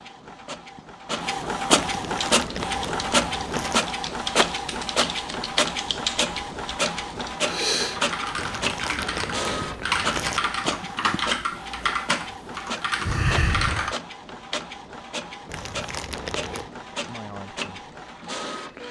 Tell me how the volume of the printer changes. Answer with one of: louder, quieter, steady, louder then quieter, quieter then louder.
quieter.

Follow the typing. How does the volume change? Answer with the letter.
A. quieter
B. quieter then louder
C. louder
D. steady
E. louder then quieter
C.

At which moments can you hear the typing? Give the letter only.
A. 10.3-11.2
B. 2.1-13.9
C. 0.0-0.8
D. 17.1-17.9
B.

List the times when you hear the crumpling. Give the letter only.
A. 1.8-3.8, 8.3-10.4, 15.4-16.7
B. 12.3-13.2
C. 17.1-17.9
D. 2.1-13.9
A.